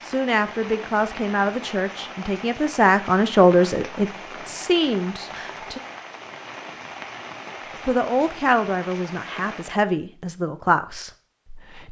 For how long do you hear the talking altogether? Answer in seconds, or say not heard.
10 s.